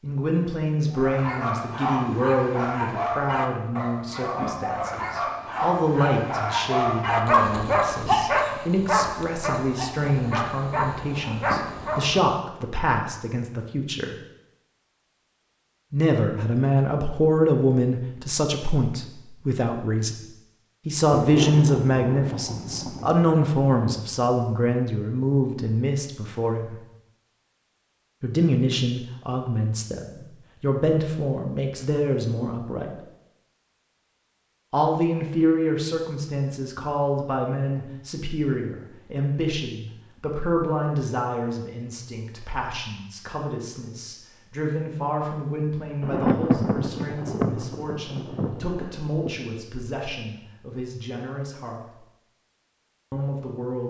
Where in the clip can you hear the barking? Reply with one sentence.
The barking can be heard from 0.9 to 12.3 s.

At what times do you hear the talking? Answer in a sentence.
The talking can be heard from 0.0 to 14.2 s, from 15.9 to 20.1 s, from 20.9 to 26.8 s, from 28.2 to 32.9 s, from 34.7 to 52.0 s and from 53.1 to 53.8 s.